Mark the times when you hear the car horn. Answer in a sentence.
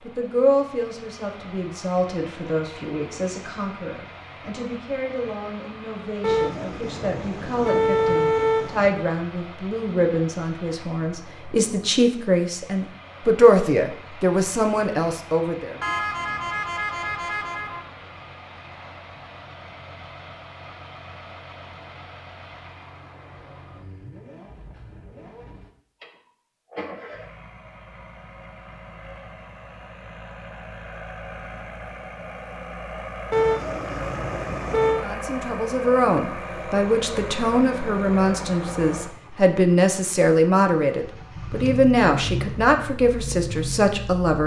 The car horn can be heard from 6.2 to 8.9 s, from 15.8 to 17.8 s and from 33.3 to 35.0 s.